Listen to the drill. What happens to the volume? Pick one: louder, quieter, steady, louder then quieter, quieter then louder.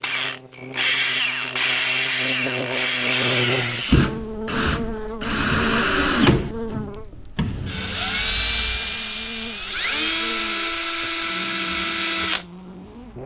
steady.